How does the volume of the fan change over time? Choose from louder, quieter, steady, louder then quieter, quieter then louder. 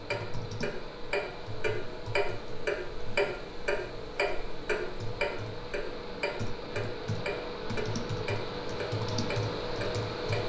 louder.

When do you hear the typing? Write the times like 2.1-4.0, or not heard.
0.0-10.4.